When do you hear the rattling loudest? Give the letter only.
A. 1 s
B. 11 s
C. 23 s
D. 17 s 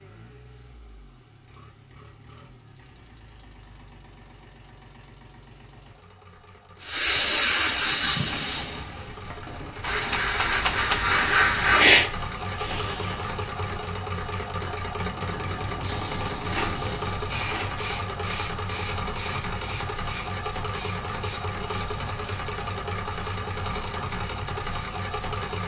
B.